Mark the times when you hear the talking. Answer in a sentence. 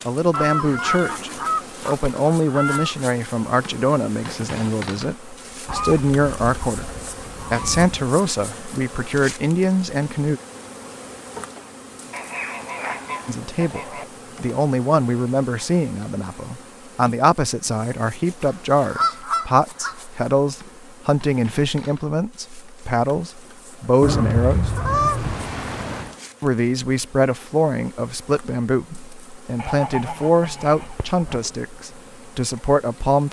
The talking can be heard from 0.1 to 6.8 s, from 7.5 to 10.4 s, from 13.2 to 24.7 s and from 26.4 to 33.2 s.